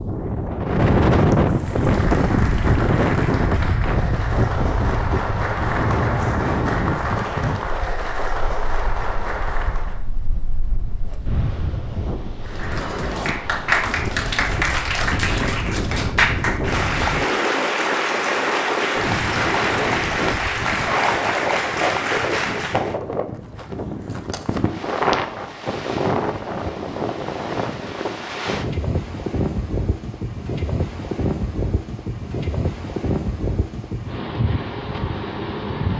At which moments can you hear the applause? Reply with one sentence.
You can hear the applause from 1.4 to 10.1 s and from 12.4 to 22.9 s.